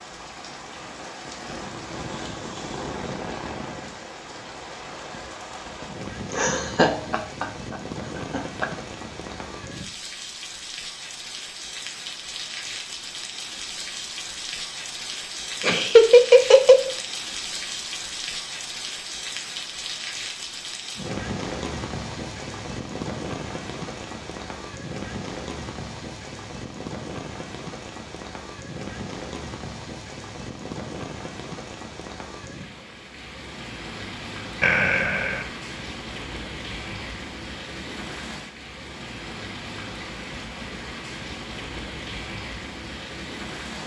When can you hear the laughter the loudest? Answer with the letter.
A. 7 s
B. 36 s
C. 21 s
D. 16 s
D.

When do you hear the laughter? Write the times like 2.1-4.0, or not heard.
6.3-8.7, 15.6-16.9, 34.6-35.5.